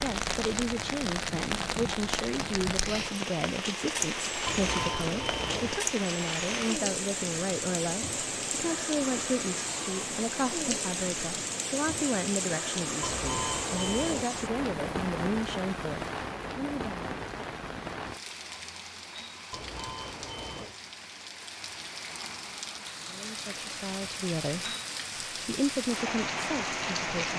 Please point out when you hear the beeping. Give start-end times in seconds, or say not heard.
4.5-5.8, 13.0-14.2, 19.5-20.8.